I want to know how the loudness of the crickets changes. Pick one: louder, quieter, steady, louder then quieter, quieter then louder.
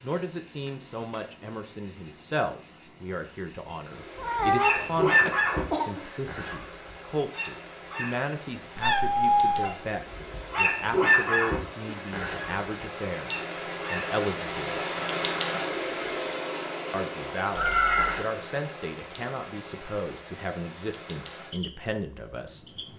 louder then quieter.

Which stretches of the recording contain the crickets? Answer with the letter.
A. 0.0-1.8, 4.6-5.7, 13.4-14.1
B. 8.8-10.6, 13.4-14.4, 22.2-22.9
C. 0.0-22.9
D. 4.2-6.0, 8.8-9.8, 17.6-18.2
C.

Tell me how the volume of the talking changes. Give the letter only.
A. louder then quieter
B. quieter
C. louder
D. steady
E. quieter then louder
D.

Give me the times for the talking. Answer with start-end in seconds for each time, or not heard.
0.0-14.8, 16.9-22.6.